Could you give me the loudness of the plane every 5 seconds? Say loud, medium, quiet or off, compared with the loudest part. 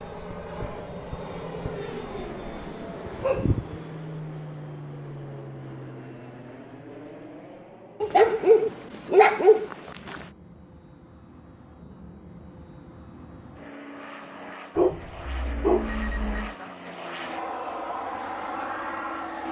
loud, medium, medium, loud.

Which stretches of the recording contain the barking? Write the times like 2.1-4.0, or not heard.
3.0-3.8, 8.0-10.2, 14.8-16.6.